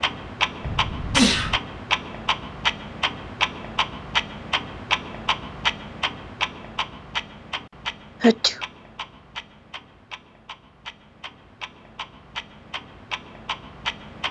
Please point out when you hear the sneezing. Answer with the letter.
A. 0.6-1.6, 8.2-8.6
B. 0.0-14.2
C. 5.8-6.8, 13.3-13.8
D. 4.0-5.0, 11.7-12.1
A.